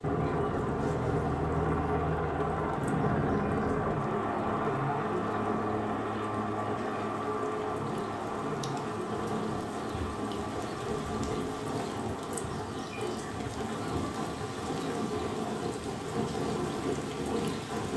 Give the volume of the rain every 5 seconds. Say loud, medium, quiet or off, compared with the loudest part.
quiet, medium, loud, loud.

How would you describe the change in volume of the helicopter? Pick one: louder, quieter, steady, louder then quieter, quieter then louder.
quieter.